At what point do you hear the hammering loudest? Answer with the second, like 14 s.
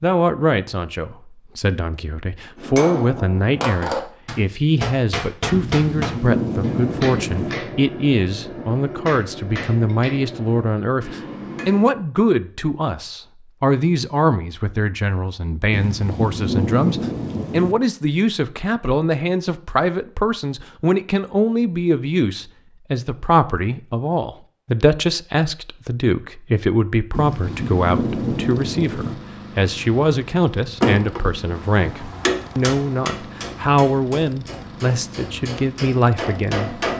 31 s.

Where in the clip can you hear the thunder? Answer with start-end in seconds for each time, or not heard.
5.5-7.5, 15.7-17.8, 27.1-29.1.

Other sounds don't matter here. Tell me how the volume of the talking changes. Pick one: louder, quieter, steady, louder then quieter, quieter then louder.
steady.